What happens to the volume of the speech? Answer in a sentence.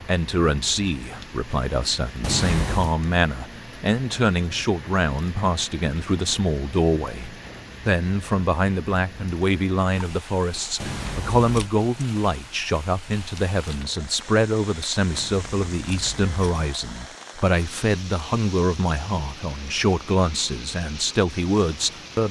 The volume of the speech stays about the same.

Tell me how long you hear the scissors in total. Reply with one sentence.
The scissors can be heard for 3 seconds in total.